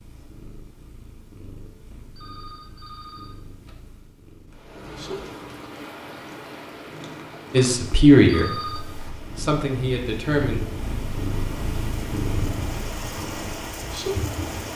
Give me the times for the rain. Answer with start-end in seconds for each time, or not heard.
4.5-14.7.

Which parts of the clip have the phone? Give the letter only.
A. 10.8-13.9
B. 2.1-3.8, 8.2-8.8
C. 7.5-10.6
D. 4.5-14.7
B.